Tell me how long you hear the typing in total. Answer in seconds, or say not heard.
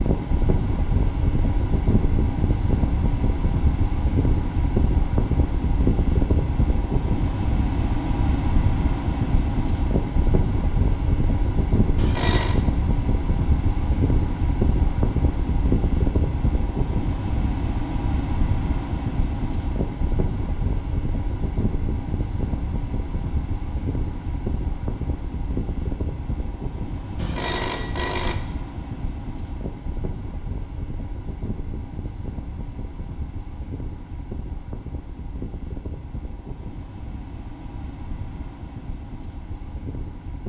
not heard.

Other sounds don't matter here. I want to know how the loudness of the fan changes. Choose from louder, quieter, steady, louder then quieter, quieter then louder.
quieter.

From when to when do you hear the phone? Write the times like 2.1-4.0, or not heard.
11.9-12.6, 27.1-28.4.